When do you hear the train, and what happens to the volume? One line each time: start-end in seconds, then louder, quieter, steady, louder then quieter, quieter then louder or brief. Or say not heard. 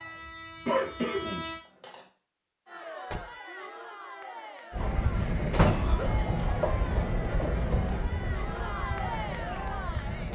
0.0-1.6 brief
4.7-10.2 quieter.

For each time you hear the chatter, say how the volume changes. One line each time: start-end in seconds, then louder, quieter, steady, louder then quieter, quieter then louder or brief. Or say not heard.
2.6-10.2 louder.